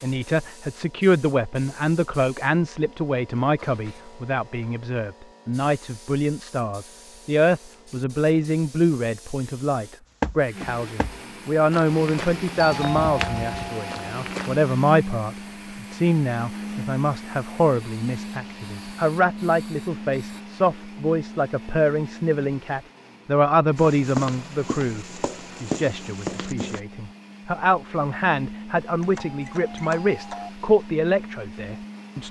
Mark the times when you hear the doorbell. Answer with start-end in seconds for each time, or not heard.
12.6-14.1, 29.0-30.5.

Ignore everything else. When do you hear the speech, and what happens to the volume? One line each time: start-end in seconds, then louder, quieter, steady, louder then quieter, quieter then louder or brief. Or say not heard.
0.0-32.2 steady.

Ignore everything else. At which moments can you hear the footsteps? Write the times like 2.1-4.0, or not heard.
10.2-14.6, 23.8-26.8.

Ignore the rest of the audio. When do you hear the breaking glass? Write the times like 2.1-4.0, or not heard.
not heard.